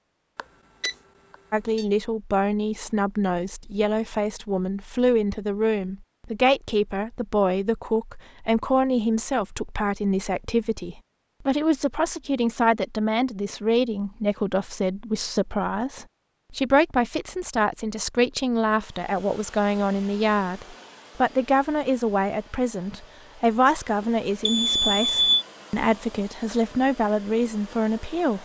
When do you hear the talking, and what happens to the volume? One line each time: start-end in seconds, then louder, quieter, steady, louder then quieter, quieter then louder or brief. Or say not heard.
1.5-28.4 steady.